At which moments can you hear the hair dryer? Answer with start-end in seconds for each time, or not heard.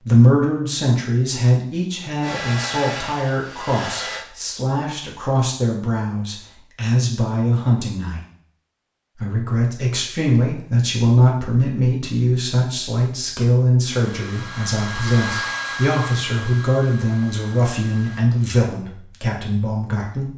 2.2-4.2, 13.8-18.3.